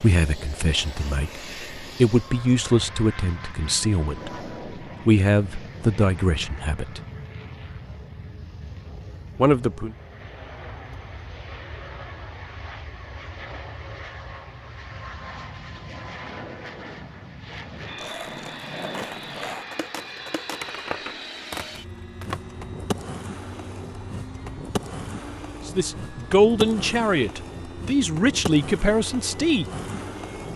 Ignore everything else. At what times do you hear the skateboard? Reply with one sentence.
The skateboard can be heard from 17.9 to 30.5 s.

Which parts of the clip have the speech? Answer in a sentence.
The speech can be heard from 0.0 to 7.0 s, from 9.3 to 9.9 s and from 25.6 to 29.6 s.